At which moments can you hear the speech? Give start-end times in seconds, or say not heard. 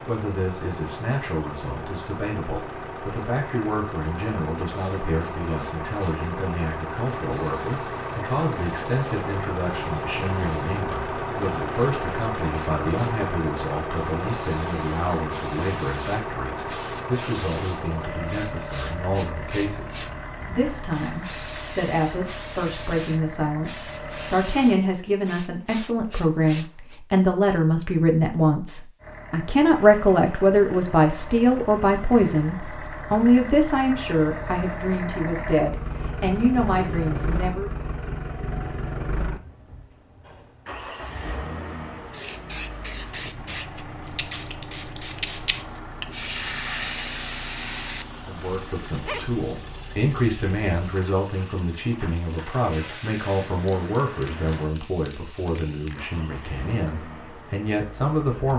0.1-37.8, 48.2-58.5.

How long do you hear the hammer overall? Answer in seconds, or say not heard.
not heard.